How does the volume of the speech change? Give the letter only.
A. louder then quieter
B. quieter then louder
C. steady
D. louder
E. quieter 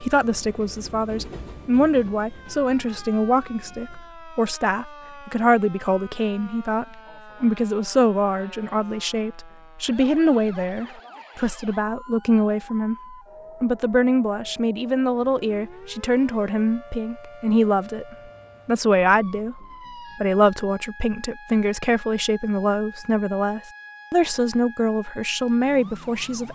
C.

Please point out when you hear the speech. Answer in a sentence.
The speech can be heard from 0.0 to 12.9 s and from 13.6 to 26.5 s.